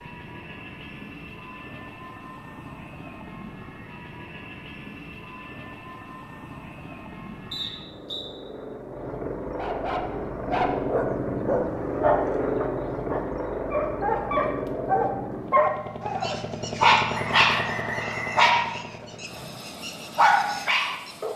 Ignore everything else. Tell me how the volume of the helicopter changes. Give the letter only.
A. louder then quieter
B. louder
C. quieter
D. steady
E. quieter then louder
A.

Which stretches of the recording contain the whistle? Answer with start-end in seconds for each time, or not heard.
7.5-8.3, 17.1-18.6.